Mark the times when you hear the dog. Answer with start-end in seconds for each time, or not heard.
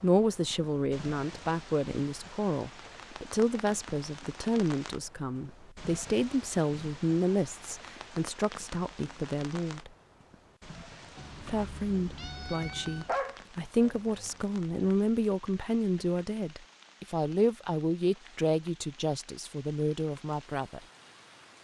13.1-14.9.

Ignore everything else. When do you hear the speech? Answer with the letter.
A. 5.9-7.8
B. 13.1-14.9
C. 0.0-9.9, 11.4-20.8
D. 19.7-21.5
C.